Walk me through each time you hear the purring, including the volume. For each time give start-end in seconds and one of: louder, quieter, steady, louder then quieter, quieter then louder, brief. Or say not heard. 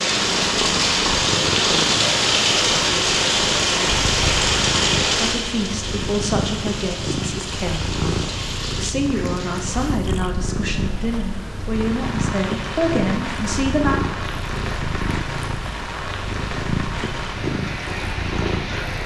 0.1-19.0 steady.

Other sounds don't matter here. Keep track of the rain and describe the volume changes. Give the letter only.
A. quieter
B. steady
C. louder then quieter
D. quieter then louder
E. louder
A.